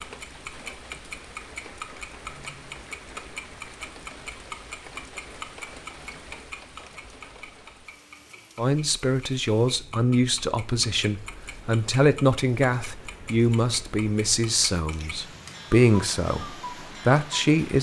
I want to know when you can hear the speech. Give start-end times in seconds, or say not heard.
8.6-17.7.